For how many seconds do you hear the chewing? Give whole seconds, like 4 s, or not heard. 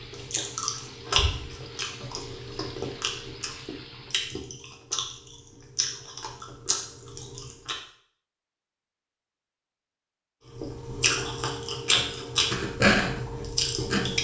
11 s.